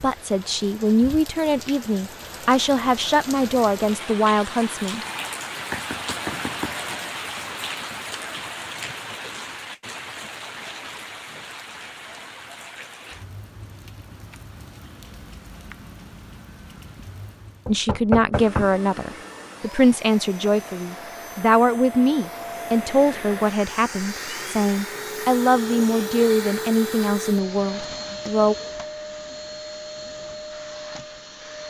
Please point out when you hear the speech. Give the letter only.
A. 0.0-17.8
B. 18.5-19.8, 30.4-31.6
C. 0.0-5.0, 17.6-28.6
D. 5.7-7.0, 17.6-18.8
C.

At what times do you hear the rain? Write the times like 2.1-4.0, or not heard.
0.0-17.8.